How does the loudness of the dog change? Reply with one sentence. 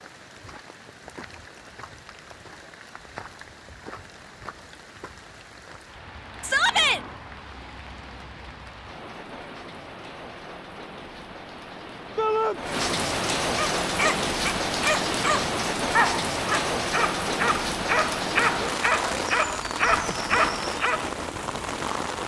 The loudness of the dog stays about the same.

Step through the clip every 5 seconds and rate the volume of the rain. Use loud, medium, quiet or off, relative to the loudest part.
quiet, quiet, loud, loud, loud.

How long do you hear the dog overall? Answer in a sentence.
The dog can be heard for 7 seconds in total.